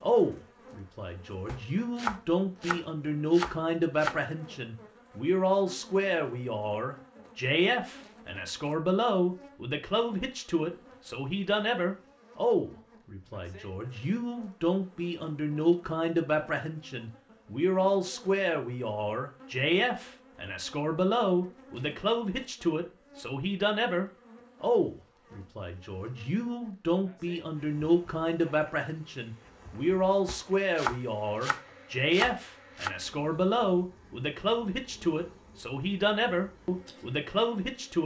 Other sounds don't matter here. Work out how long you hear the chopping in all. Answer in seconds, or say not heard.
5 s.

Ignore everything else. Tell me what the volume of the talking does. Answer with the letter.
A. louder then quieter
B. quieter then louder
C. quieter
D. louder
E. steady
E.